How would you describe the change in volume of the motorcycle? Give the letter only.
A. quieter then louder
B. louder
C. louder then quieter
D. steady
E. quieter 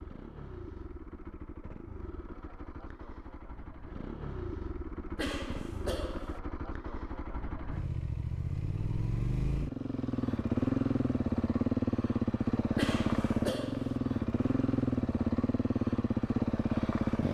B.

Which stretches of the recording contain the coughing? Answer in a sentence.
You can hear the coughing from 5.2 to 6.4 s and from 12.8 to 14.0 s.